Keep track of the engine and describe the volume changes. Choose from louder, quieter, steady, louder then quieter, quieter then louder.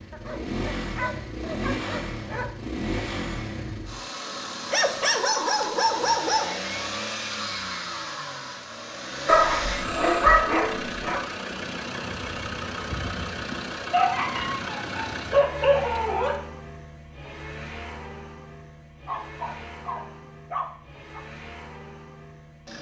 quieter.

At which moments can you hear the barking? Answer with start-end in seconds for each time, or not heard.
0.1-2.5, 4.7-6.6, 9.2-11.2, 13.9-16.4, 19.1-21.2.